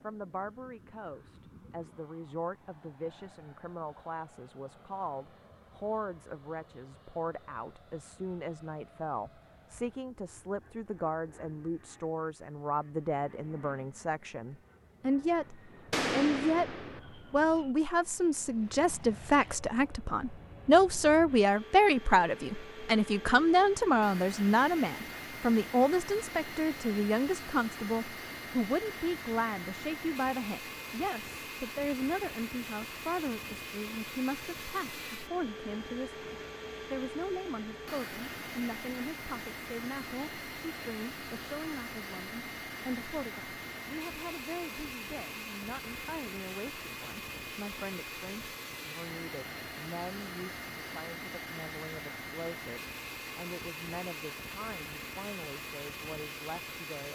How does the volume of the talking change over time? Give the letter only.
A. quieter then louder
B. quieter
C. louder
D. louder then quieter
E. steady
D.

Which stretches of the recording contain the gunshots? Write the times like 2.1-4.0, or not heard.
15.9-17.0.